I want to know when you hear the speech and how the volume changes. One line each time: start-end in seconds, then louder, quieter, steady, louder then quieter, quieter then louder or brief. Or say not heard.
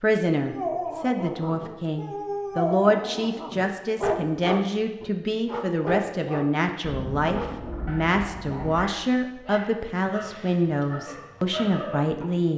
0.0-12.5 steady.